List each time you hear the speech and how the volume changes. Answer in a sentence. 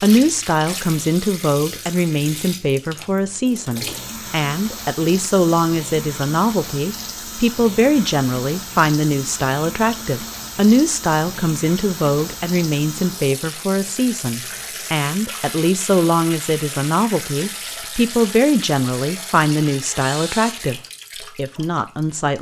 You can hear the speech from 0.0 to 22.3 s, at a steady volume.